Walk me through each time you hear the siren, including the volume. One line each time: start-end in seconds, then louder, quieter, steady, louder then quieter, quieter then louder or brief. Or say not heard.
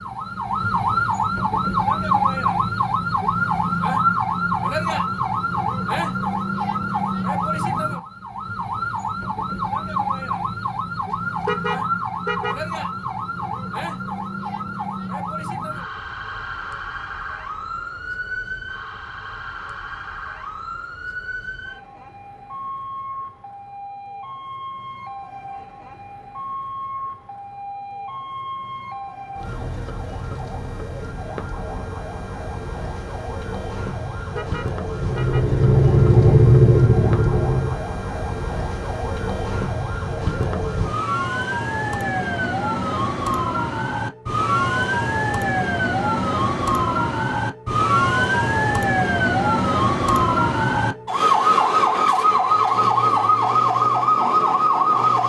0.0-55.2 quieter then louder.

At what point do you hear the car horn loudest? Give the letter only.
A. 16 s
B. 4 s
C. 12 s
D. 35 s
C.